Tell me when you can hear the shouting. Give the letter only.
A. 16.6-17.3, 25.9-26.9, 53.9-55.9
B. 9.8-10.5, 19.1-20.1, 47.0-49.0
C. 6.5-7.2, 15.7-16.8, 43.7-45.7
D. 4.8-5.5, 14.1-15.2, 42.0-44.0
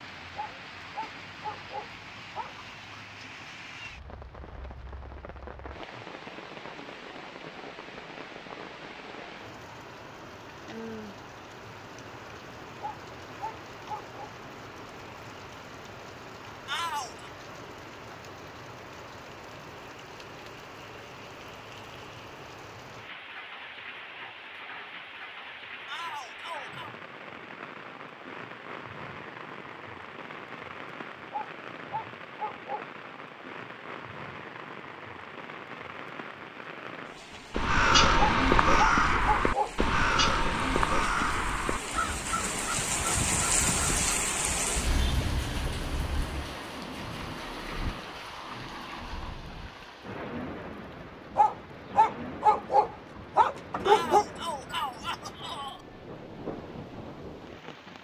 A.